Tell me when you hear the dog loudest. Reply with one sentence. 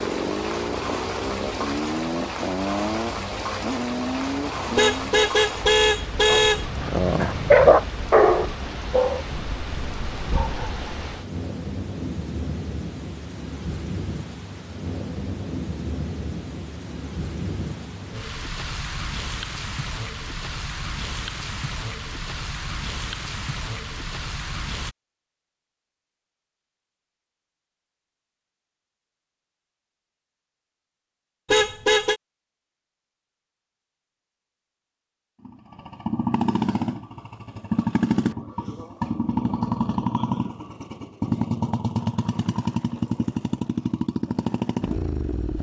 The volume of the dog peaks at 8 seconds.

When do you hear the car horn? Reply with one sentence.
The car horn can be heard from 4.8 to 6.7 s and from 31.4 to 32.2 s.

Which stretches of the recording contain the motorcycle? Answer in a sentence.
You can hear the motorcycle from 0.0 to 5.2 s and from 35.5 to 45.5 s.